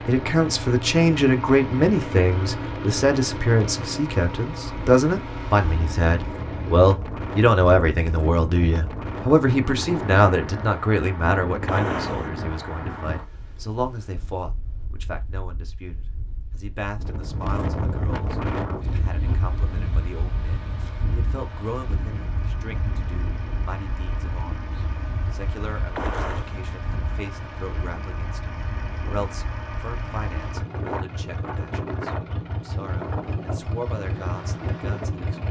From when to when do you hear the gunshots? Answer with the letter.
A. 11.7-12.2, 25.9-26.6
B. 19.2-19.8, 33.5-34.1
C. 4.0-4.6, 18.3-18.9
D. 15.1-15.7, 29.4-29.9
A.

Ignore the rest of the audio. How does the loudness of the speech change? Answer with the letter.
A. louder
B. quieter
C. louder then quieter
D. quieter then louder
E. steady
B.